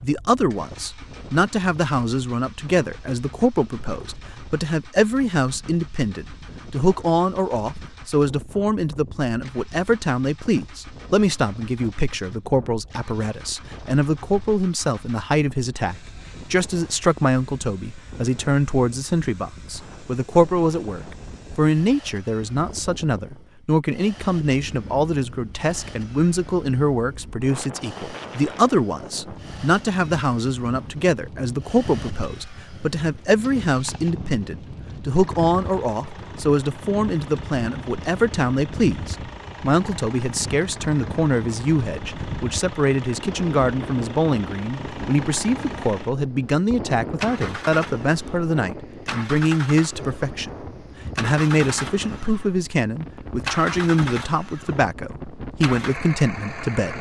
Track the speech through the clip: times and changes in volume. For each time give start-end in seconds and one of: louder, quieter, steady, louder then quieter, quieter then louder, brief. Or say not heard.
0.0-56.9 steady.